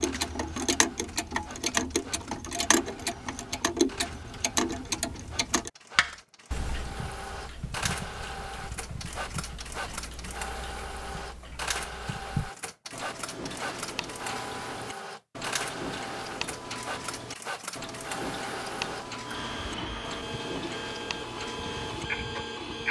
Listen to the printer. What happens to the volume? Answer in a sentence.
The volume of the printer goes up.